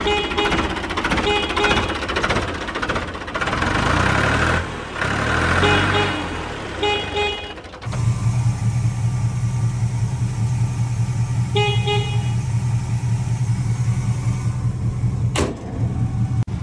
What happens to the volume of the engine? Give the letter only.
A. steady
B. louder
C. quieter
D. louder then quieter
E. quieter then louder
A.